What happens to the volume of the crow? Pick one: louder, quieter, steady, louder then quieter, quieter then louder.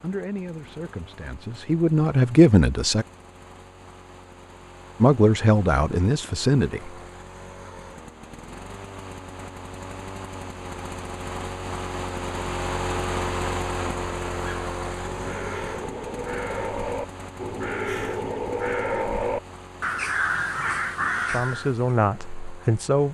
louder.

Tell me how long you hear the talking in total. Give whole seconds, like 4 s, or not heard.
7 s.